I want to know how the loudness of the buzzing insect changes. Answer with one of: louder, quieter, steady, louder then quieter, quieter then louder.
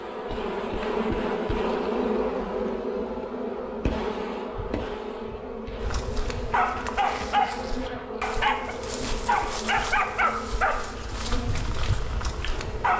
quieter.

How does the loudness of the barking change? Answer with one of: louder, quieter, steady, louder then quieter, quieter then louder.
quieter.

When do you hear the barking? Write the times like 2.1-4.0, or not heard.
5.8-12.9.